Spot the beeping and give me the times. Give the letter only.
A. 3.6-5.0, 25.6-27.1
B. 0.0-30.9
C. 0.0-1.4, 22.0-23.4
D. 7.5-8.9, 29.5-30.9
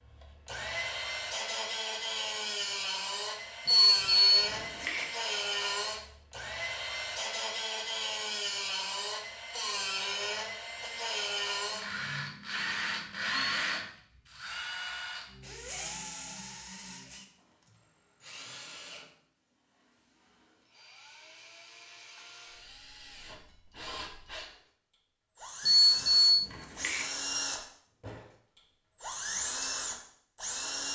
A.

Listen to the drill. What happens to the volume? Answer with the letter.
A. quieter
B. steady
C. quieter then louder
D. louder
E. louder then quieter
C.